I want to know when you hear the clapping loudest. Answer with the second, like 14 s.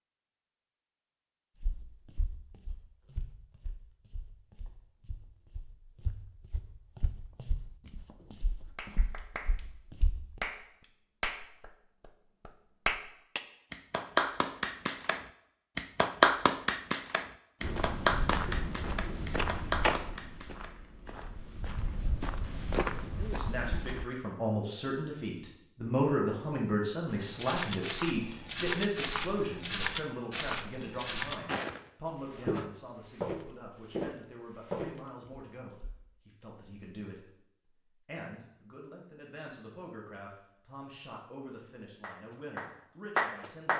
16 s.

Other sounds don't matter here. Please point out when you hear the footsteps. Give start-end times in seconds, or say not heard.
1.6-10.4, 17.6-24.1, 27.1-36.0.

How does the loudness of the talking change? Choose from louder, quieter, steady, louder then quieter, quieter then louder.
quieter.